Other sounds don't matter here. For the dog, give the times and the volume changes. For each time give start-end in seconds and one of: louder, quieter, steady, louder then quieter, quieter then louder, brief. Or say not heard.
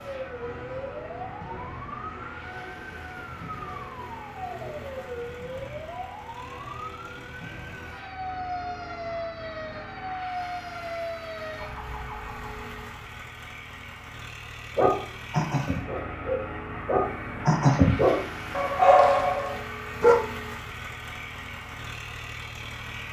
14.8-20.1 louder.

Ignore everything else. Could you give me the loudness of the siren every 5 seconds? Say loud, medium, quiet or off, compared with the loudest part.
loud, loud, loud, off, off.